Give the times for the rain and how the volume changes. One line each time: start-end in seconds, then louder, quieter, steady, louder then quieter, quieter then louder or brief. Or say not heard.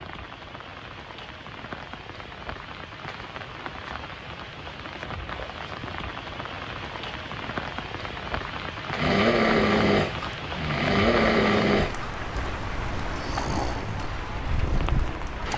0.0-15.5 louder.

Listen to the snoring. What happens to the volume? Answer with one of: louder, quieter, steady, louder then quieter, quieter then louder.
quieter.